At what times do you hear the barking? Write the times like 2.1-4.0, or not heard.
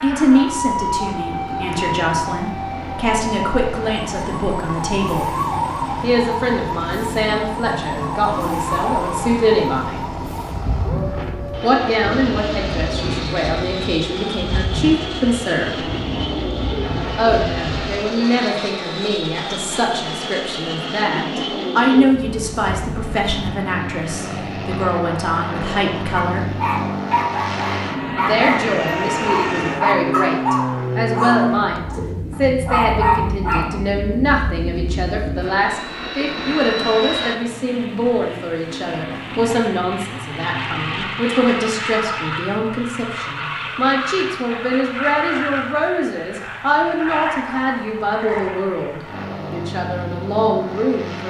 26.1-33.8.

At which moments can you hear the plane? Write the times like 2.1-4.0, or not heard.
0.0-51.2.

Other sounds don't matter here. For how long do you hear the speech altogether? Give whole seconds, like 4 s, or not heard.
46 s.